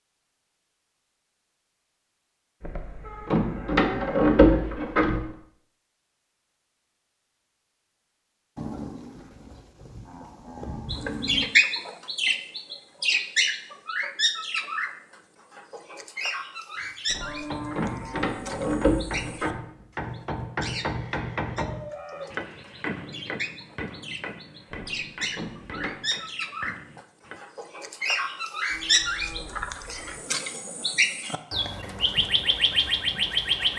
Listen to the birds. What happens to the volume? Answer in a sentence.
The volume of the birds goes down, then up.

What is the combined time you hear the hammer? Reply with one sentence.
You can hear the hammer for 11 seconds altogether.